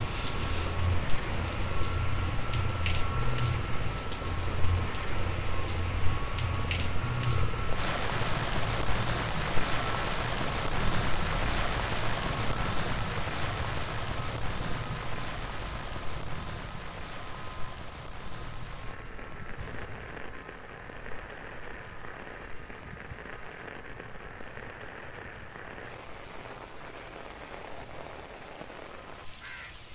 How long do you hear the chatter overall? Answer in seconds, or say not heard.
not heard.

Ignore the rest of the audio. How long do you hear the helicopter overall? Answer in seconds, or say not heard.
30 s.